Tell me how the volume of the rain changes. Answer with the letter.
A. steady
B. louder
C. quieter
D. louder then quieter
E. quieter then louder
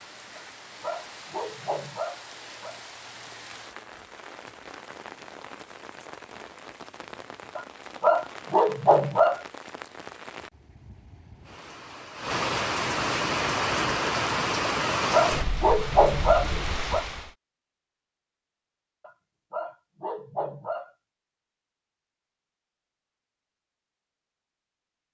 B.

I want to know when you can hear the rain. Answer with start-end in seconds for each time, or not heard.
0.0-17.3.